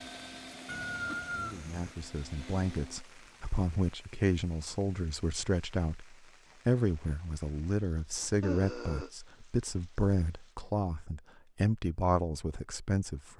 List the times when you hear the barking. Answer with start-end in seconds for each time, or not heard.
not heard.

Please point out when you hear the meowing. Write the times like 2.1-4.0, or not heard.
0.7-1.9.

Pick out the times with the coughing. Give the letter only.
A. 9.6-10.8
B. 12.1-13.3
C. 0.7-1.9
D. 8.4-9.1
D.